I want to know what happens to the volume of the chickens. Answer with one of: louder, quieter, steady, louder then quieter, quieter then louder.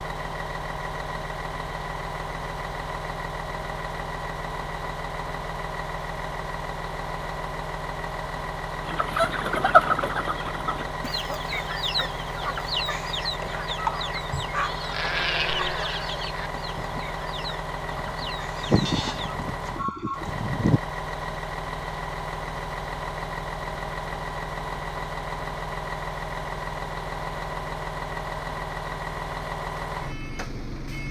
quieter.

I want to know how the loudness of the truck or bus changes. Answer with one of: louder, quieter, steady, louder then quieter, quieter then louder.
steady.